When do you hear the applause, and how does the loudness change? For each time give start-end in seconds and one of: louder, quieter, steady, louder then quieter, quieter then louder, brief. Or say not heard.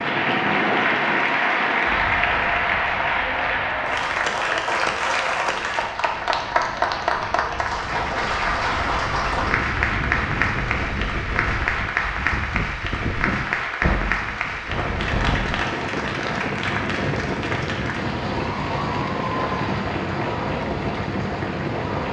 0.0-22.0 quieter.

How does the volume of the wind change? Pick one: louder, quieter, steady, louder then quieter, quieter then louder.
quieter then louder.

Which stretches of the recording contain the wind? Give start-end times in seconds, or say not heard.
0.0-22.0.